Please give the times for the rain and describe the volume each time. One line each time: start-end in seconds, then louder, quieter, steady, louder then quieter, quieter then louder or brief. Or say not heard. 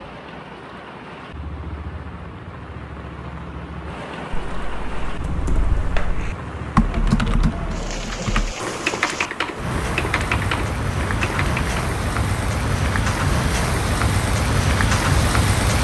0.0-15.8 louder.